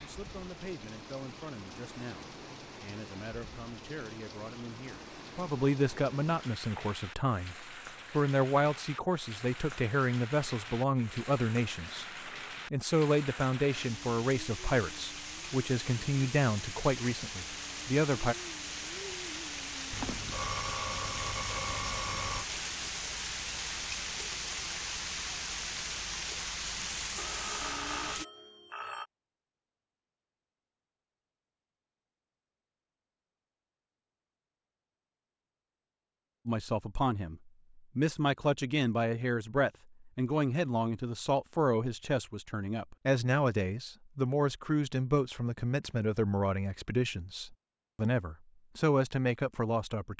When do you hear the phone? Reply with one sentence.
You can hear the phone from 19.9 to 22.4 s and from 27.1 to 29.1 s.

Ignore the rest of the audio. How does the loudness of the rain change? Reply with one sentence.
The volume of the rain goes up.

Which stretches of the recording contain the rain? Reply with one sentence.
You can hear the rain from 0.0 to 28.2 s.